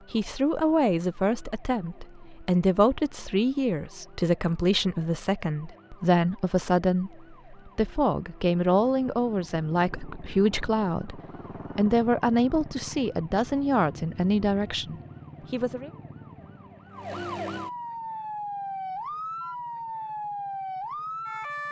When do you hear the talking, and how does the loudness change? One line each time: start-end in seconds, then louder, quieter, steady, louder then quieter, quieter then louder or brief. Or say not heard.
0.1-15.9 steady.